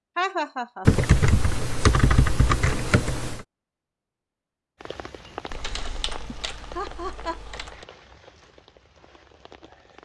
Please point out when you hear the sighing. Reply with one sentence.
The sighing can't be heard in this clip.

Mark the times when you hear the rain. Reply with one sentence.
You can hear the rain from 4.8 to 9.9 s.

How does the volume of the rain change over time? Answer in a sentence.
The volume of the rain goes down.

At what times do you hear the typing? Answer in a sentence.
You can hear the typing from 0.8 to 3.5 s and from 5.5 to 7.8 s.